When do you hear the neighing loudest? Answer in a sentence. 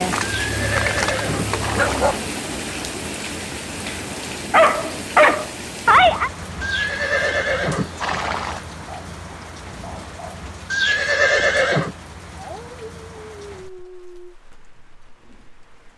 The volume of the neighing peaks at 11 seconds.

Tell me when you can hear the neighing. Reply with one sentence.
You can hear the neighing from 0.2 to 2.2 s, from 6.6 to 8.6 s and from 10.7 to 11.9 s.